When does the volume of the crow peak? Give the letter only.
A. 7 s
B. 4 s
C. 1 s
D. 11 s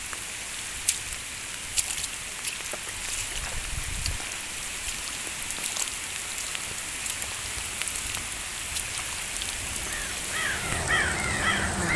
D.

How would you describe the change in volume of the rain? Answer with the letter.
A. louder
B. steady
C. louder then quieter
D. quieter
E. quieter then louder
B.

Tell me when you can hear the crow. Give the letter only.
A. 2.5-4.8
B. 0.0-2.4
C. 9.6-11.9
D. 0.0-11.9
C.